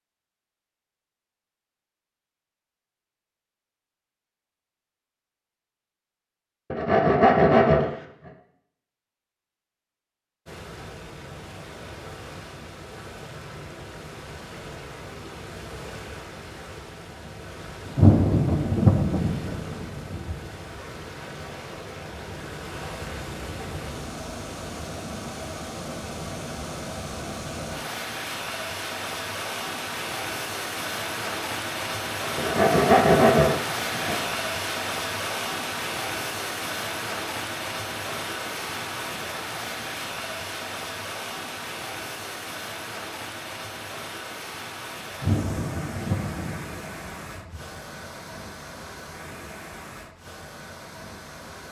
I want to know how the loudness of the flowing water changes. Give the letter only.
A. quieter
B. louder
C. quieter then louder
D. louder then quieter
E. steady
D.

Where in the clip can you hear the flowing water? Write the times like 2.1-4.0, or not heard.
10.4-51.6.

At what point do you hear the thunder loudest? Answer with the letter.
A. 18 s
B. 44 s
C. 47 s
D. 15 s
A.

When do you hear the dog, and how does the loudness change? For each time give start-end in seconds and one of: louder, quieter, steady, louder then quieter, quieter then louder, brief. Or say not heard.
not heard.